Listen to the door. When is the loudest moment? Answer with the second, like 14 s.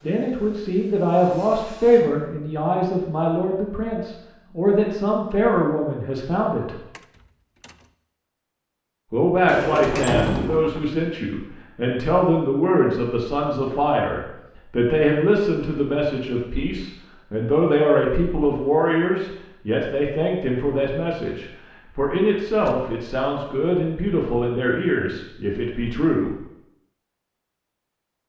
10 s.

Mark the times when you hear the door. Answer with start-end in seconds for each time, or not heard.
7.0-7.9, 9.4-10.9, 22.4-22.9.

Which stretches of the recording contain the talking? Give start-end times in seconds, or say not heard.
0.0-6.8, 9.1-26.4.